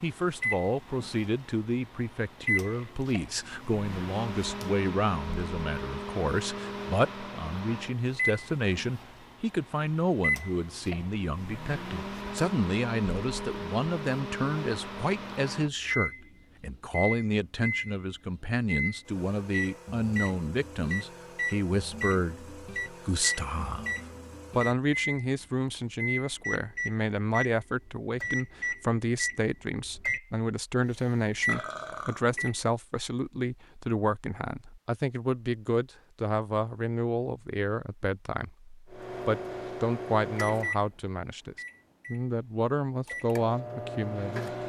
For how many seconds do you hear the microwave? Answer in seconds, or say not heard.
38 s.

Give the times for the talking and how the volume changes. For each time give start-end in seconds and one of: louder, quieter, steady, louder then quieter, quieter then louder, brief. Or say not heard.
0.0-23.9 steady
24.6-44.5 steady.